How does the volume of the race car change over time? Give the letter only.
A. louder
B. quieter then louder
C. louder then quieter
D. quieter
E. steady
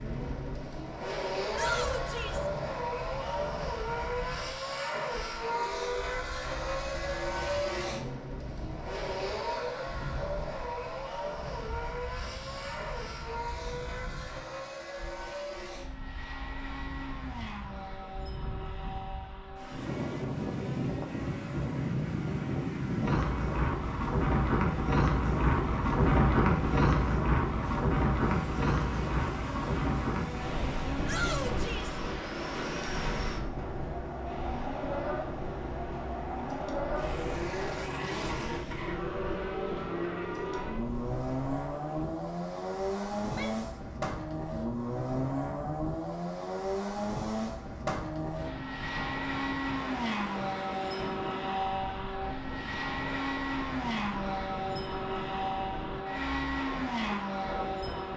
B.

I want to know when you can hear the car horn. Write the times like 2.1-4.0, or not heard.
5.5-6.2.